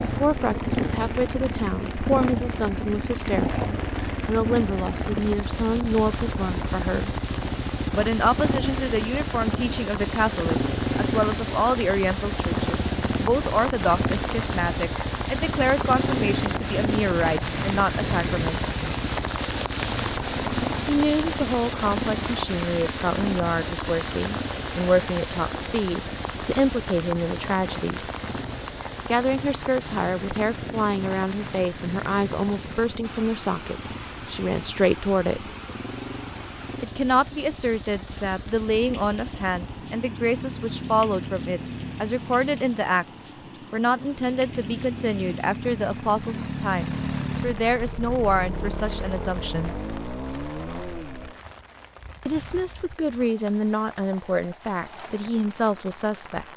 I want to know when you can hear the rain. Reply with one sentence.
The rain can be heard from 0.0 to 56.5 s.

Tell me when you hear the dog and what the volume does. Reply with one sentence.
You can't hear the dog here.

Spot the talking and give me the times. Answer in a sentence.
You can hear the talking from 0.0 to 7.2 s, from 7.9 to 18.6 s, from 20.9 to 28.1 s, from 29.1 to 35.5 s, from 36.8 to 49.8 s and from 52.2 to 56.5 s.